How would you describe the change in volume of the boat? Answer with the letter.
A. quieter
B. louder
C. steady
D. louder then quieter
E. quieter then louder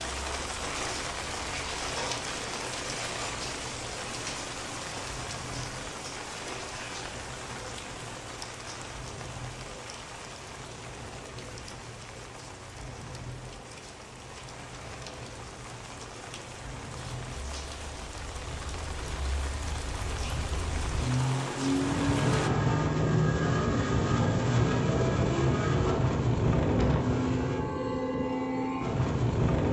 B.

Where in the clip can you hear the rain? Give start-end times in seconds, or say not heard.
0.0-22.5.